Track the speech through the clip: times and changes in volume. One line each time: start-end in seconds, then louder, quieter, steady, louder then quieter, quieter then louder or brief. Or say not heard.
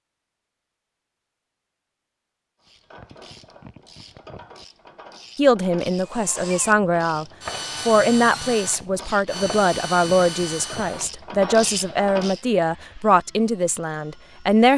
5.3-7.2 brief
7.8-14.7 steady.